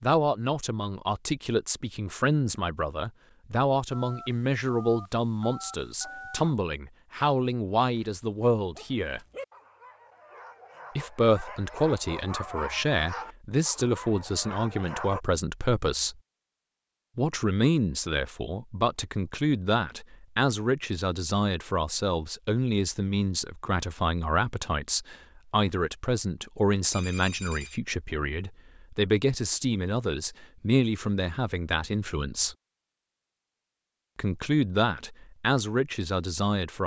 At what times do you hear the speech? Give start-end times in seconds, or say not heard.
0.0-9.2, 10.9-16.1, 17.1-32.5, 34.1-36.8.